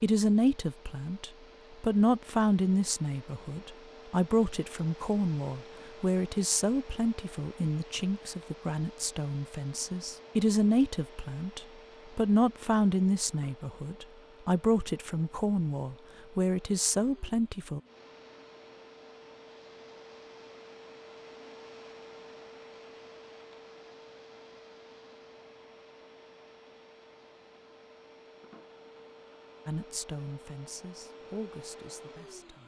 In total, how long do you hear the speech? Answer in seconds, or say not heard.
21 s.